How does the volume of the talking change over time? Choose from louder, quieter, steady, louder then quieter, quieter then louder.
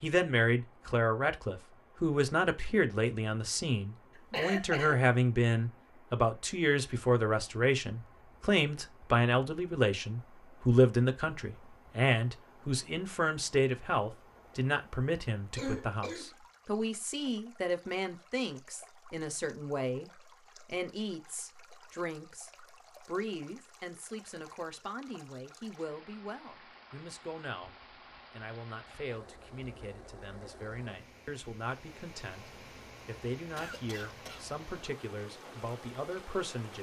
quieter.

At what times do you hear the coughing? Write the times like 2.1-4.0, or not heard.
4.2-5.0, 15.6-16.3, 33.5-34.5.